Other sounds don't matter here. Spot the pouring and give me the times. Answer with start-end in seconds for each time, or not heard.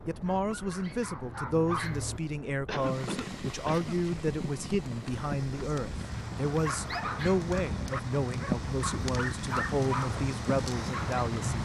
not heard.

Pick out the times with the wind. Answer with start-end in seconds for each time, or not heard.
0.0-11.6.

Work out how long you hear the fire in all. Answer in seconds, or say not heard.
9 s.